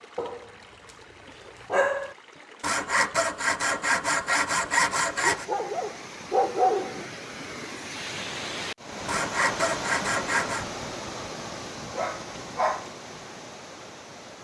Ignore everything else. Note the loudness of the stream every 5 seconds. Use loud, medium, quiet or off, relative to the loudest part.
quiet, loud, loud.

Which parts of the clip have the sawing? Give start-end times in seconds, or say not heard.
2.6-5.5, 9.1-10.7.